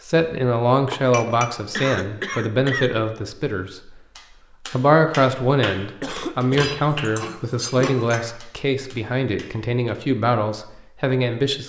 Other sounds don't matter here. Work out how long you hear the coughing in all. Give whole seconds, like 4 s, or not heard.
3 s.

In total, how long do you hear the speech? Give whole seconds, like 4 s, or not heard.
11 s.